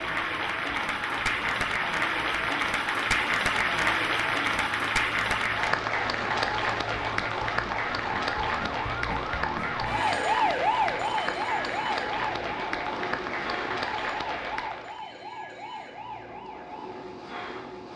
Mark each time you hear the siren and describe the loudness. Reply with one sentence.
You can hear the siren from 0.0 to 17.9 s, getting louder then quieter.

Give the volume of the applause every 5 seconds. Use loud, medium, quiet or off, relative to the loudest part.
loud, loud, medium, off.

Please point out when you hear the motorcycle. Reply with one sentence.
The motorcycle can't be heard in this clip.